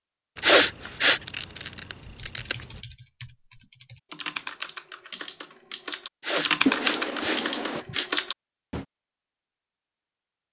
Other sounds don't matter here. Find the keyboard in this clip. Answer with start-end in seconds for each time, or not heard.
2.2-8.8.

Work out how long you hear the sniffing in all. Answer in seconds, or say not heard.
3 s.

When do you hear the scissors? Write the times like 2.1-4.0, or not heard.
0.3-2.8, 6.7-7.8.